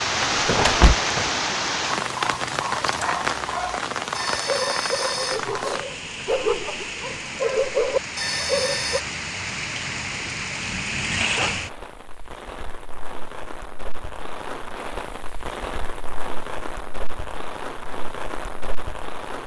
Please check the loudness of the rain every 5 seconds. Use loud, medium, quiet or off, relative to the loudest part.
loud, medium, medium, medium.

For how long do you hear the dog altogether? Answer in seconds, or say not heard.
6 s.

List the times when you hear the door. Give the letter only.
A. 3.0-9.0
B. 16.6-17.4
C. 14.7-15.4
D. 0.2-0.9
D.